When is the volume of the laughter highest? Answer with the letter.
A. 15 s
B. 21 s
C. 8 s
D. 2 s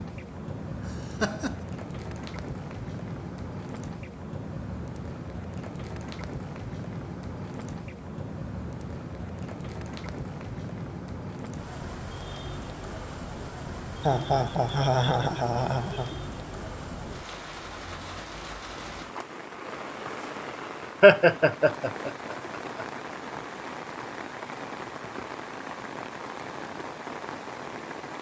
B.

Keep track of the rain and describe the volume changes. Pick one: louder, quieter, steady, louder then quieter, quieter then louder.
steady.